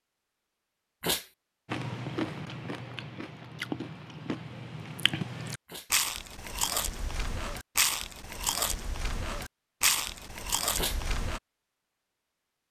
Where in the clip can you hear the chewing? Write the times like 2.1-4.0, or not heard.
1.6-11.4.